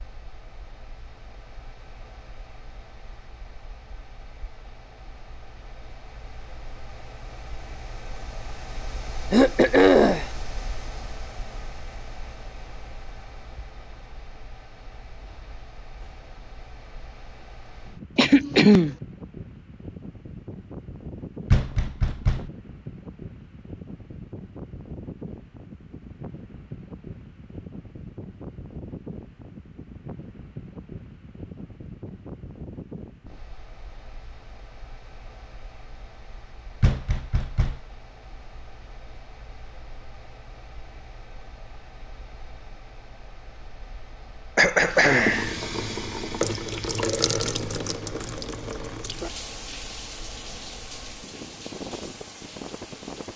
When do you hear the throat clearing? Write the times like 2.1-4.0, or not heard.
9.3-10.2, 18.1-18.9, 44.5-45.5.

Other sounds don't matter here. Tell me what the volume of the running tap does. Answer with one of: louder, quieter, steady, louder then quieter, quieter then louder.
quieter.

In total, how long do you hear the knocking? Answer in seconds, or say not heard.
2 s.